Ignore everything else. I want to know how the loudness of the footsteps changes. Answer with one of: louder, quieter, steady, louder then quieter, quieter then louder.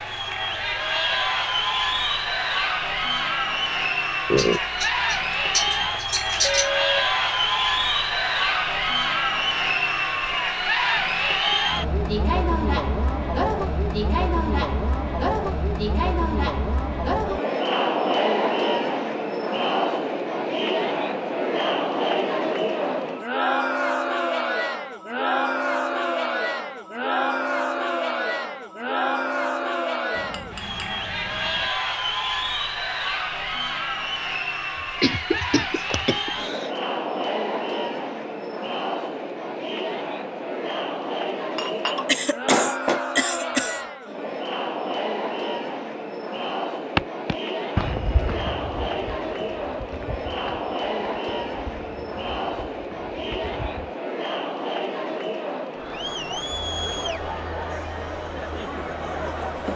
quieter.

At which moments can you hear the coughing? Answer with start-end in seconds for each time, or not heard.
4.3-6.7, 34.8-36.8, 42.0-43.8.